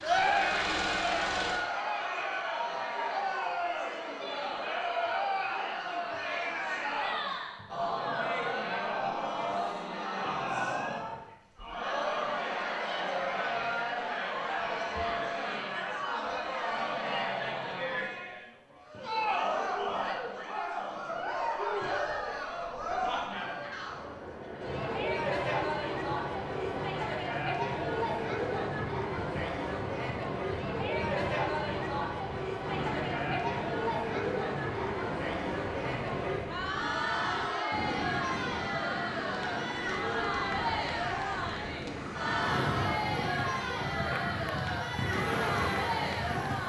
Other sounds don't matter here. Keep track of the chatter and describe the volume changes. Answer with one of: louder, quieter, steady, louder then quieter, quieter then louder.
steady.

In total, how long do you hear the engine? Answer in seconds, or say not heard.
2 s.